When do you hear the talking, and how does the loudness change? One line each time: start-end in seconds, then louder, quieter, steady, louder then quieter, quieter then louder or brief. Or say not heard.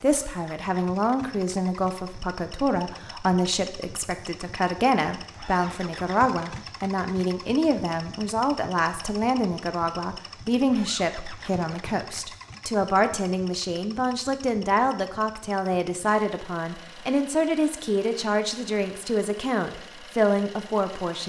0.0-21.2 steady.